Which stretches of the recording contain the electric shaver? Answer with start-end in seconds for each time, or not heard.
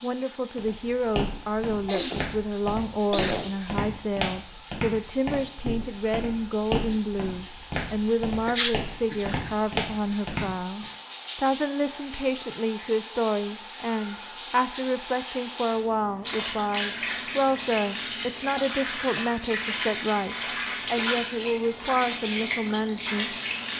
not heard.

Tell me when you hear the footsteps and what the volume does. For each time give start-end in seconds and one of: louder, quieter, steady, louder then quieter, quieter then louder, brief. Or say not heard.
0.6-10.8 steady.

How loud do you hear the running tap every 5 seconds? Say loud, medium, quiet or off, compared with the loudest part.
quiet, medium, medium, loud, loud.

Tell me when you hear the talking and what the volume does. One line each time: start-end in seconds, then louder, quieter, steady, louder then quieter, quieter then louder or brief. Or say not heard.
0.0-23.4 steady.